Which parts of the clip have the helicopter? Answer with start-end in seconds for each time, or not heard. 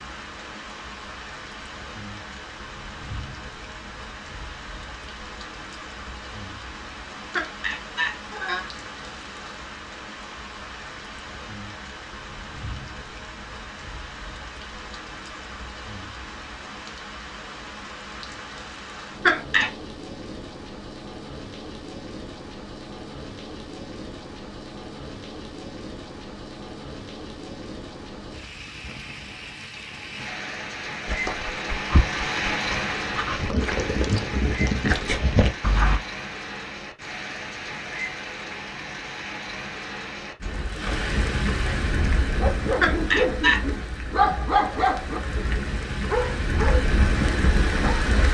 not heard.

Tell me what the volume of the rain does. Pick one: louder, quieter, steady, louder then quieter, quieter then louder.
louder.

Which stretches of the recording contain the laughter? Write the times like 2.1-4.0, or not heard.
7.3-8.7, 19.2-19.7, 42.8-43.6.